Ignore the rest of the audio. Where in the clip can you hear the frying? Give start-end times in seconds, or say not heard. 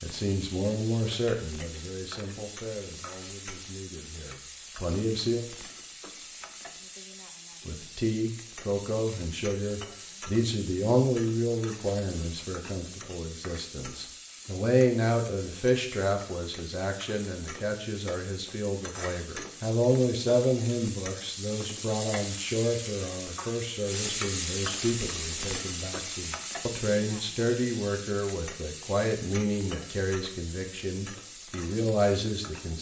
0.0-32.7.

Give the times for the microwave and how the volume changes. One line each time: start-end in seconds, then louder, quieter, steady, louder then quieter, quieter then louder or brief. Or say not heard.
not heard.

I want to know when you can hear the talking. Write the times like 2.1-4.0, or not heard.
0.0-5.4, 7.7-32.7.